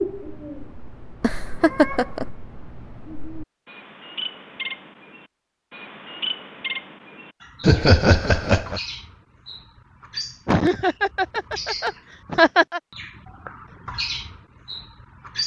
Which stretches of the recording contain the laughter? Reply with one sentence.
You can hear the laughter from 1.2 to 2.2 s, from 7.6 to 8.8 s and from 10.4 to 12.8 s.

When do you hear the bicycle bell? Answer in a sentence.
You can't hear the bicycle bell here.